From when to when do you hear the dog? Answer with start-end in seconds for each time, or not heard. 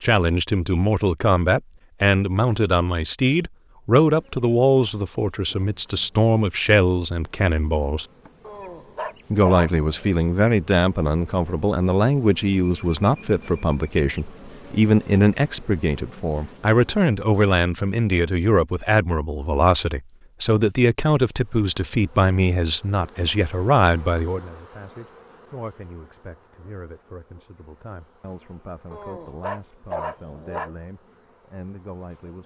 8.4-10.2, 28.9-30.8.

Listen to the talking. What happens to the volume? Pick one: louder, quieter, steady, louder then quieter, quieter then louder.
quieter.